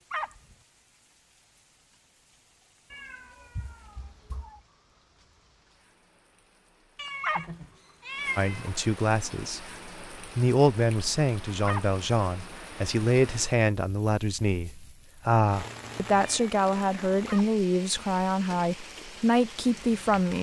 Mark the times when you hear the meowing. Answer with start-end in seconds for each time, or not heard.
2.9-4.6, 7.0-8.7, 15.5-16.6.